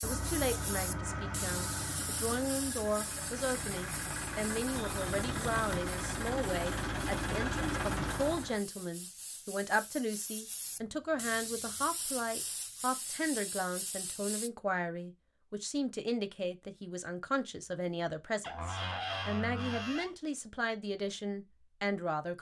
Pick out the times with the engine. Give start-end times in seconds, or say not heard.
0.0-8.6.